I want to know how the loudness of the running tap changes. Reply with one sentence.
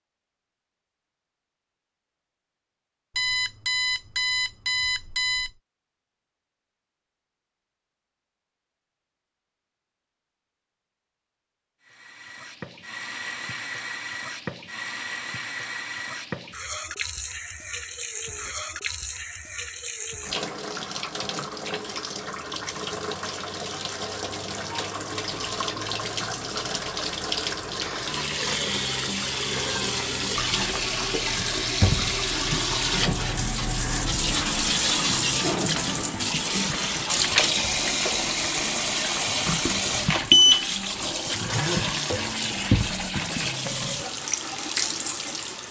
The volume of the running tap goes up.